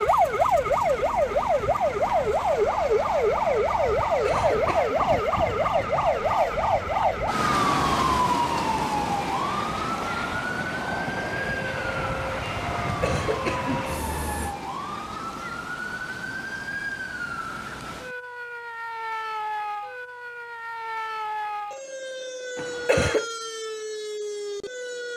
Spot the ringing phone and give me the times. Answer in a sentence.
You can't hear the ringing phone here.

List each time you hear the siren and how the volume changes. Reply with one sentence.
You can hear the siren from 0.0 to 25.1 s, getting quieter.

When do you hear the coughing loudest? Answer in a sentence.
The loudest moment of the coughing is at 23 seconds.